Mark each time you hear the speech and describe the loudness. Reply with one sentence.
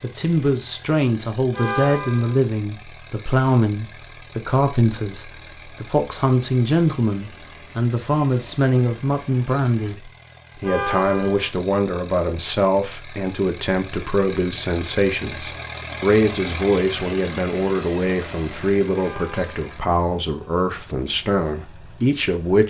You can hear the speech from 0.0 to 22.6 s, at a steady volume.